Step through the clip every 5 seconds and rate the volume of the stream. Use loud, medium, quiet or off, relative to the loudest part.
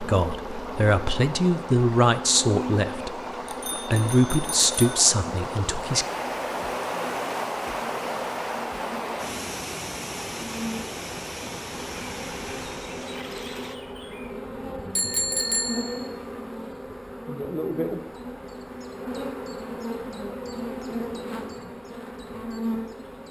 medium, loud, medium, off, off.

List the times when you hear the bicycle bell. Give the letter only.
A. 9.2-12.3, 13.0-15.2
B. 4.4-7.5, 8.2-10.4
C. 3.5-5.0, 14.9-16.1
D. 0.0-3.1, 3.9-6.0
C.